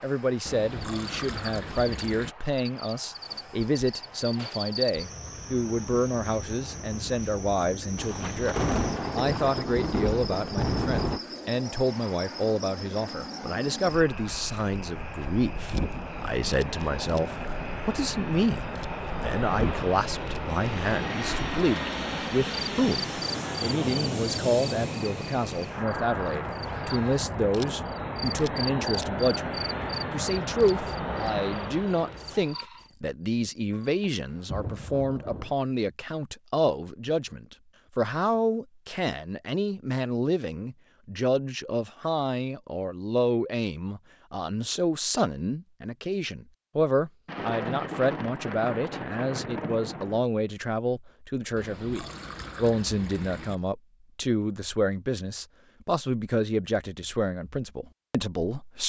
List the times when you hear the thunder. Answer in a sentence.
You can hear the thunder from 8.0 to 11.2 s, from 33.8 to 35.5 s and from 47.2 to 50.2 s.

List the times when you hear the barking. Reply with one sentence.
The barking can't be heard in this clip.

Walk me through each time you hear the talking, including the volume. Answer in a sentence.
The talking can be heard from 0.0 to 58.8 s, at a steady volume.